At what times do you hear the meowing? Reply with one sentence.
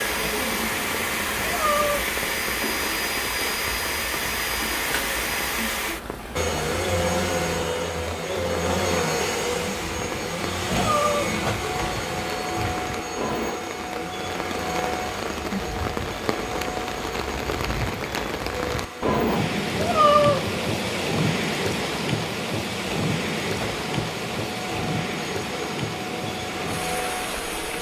You can hear the meowing from 0.7 to 2.0 s, from 10.0 to 11.3 s and from 19.1 to 20.6 s.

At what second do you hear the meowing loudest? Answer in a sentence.
The loudest moment of the meowing is at 20 seconds.